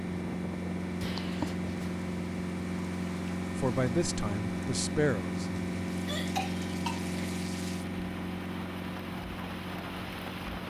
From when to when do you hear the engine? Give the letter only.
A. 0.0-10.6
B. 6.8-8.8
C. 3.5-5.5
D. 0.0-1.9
A.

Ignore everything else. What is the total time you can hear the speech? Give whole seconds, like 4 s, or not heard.
2 s.